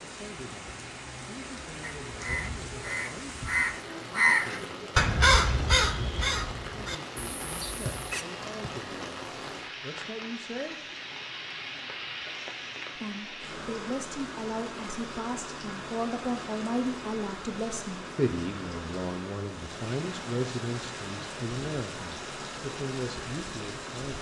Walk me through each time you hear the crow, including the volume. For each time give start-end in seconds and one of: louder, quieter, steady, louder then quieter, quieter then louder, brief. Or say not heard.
1.8-8.2 louder then quieter.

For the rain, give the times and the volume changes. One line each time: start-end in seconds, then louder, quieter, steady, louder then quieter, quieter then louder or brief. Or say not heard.
0.0-24.1 steady.